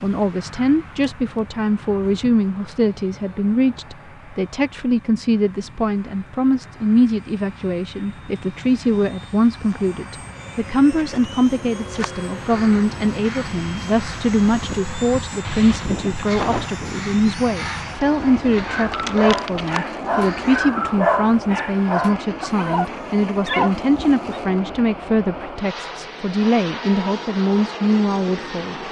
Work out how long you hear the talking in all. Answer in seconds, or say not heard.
29 s.